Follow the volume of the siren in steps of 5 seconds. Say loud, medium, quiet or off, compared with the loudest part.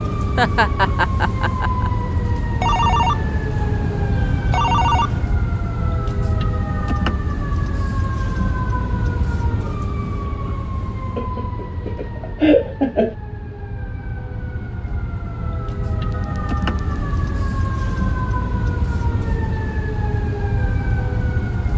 loud, loud, medium, loud, loud.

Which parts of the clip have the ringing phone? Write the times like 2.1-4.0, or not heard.
2.6-5.3, 16.1-17.0.